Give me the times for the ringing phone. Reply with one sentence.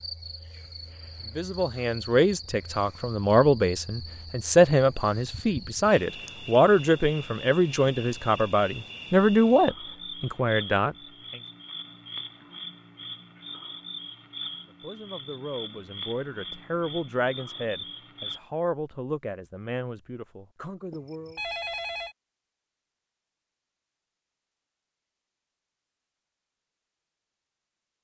You can hear the ringing phone from 20.9 to 22.1 s.